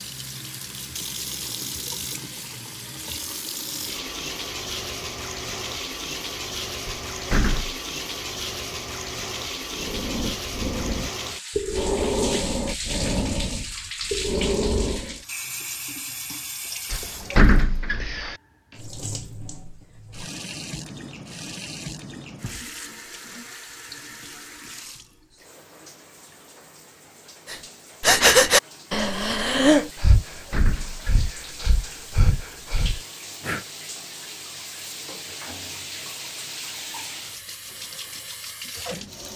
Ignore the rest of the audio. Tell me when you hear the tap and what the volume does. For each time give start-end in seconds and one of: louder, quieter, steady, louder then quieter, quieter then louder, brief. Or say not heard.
0.0-39.3 quieter then louder.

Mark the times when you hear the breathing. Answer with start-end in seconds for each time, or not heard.
9.7-15.2, 27.5-33.6.